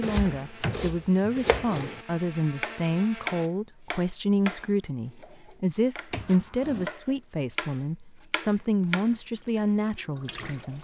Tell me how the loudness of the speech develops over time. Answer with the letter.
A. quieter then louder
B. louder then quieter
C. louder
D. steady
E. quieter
D.